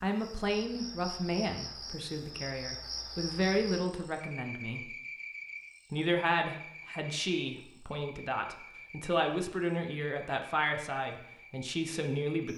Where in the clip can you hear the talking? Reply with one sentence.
The talking can be heard from 0.0 to 5.0 s and from 5.9 to 12.5 s.